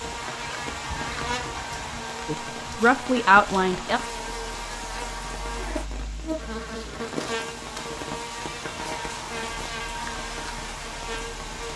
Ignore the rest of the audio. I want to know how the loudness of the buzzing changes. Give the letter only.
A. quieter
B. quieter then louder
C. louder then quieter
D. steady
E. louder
D.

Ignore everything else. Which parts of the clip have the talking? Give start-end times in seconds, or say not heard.
2.2-4.0.